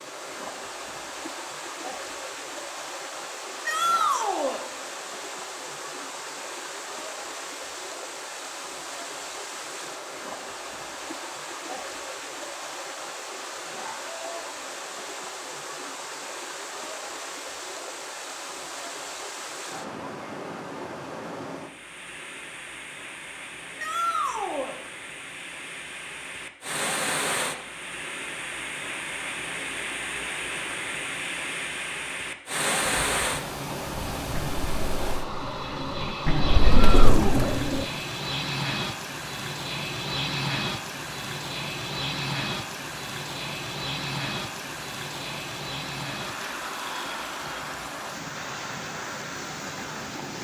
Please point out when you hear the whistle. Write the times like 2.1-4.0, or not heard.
not heard.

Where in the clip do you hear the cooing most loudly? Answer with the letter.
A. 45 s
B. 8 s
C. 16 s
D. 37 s
D.